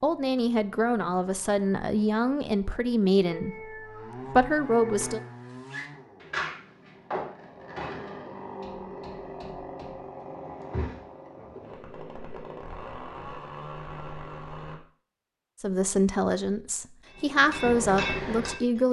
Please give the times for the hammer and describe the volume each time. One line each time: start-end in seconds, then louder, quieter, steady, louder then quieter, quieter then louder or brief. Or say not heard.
5.0-10.1 louder then quieter
17.1-18.8 brief.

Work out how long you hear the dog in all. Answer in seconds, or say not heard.
not heard.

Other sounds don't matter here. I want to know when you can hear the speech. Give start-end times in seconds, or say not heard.
0.0-5.2, 15.6-18.8.